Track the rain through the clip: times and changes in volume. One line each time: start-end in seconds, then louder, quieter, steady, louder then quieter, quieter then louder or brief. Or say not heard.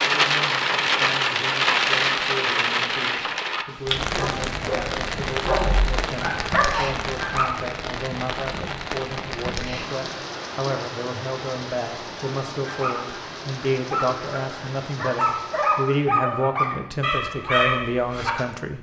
0.0-16.1 quieter.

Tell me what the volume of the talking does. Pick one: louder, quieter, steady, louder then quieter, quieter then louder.
louder.